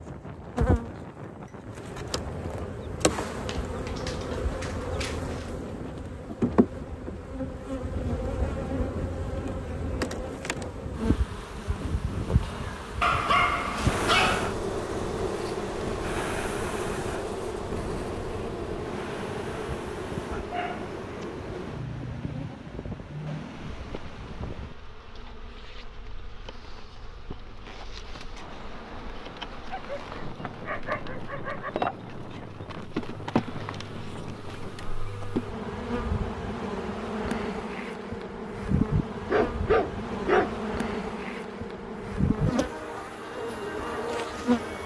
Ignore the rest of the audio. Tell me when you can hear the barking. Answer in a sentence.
You can hear the barking from 3.5 to 5.5 s, from 13.0 to 14.6 s, from 20.5 to 21.3 s, from 29.7 to 31.7 s and from 39.2 to 40.6 s.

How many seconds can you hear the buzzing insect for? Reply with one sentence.
The buzzing insect can be heard for 45 seconds in total.